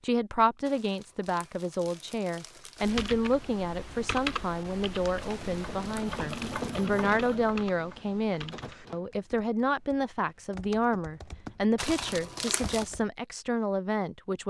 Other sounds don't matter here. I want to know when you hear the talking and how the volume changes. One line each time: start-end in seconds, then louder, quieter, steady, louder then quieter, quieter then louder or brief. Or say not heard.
0.0-14.4 steady.